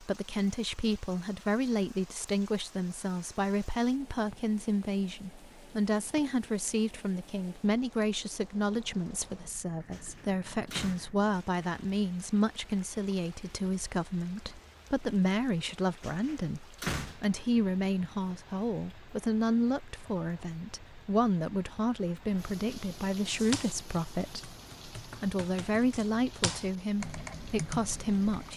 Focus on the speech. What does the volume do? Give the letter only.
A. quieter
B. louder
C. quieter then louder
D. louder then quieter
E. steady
E.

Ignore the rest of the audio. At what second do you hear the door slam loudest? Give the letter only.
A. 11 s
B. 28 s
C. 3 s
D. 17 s
D.